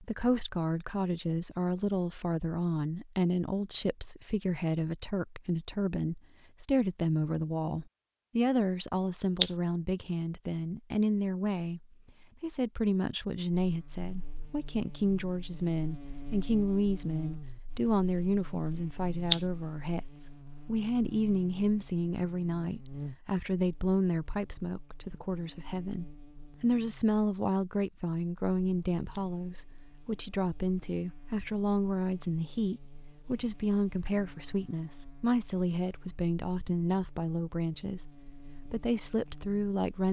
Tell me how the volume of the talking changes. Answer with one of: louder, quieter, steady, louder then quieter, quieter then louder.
steady.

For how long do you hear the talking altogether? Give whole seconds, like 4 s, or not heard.
40 s.